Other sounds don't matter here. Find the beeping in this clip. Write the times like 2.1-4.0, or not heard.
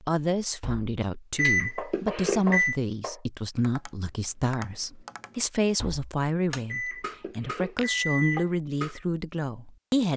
1.4-2.8, 6.7-8.5.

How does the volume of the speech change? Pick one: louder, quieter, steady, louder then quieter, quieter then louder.
steady.